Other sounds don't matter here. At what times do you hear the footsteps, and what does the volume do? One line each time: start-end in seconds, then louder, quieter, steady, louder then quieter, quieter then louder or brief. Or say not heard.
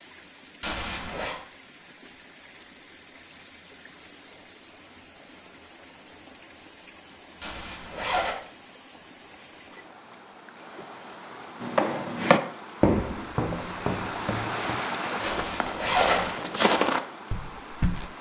11.6-18.1 quieter then louder.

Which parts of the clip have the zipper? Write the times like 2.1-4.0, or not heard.
0.6-1.4, 7.4-8.3, 15.2-16.3.